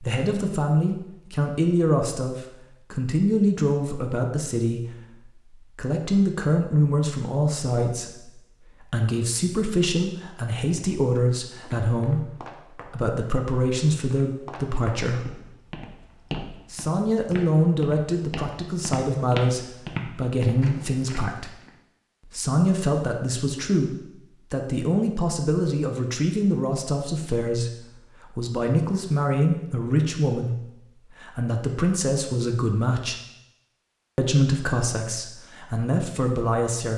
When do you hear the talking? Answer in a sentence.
The talking can be heard from 0.0 to 15.2 s, from 16.7 to 21.5 s, from 22.3 to 33.1 s and from 34.1 to 36.9 s.